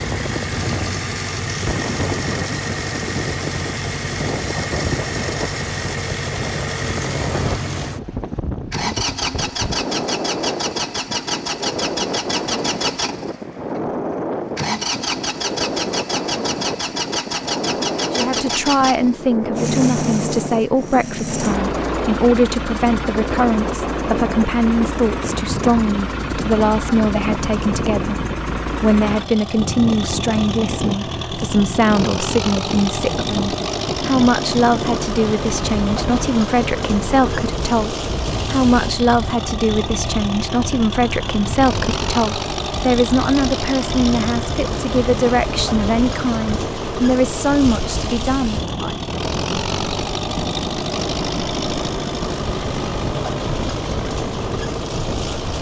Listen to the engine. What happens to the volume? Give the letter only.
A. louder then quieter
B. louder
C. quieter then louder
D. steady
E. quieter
D.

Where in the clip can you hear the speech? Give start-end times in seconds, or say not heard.
18.1-49.0.